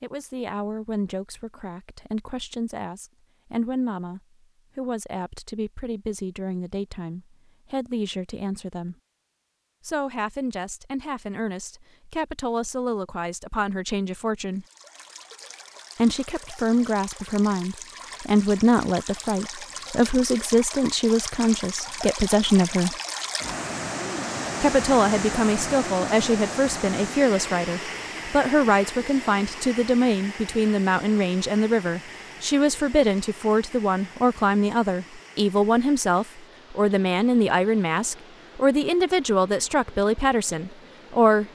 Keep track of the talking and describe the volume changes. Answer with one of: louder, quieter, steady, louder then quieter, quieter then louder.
louder.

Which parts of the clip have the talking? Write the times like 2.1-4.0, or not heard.
0.0-8.9, 9.8-14.7, 15.9-22.9, 24.6-41.5.